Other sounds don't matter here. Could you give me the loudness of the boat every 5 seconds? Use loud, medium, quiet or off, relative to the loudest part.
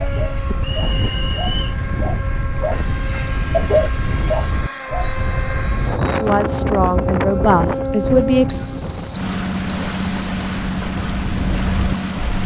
medium, loud, loud.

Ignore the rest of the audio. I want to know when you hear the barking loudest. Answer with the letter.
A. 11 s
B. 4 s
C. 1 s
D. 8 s
B.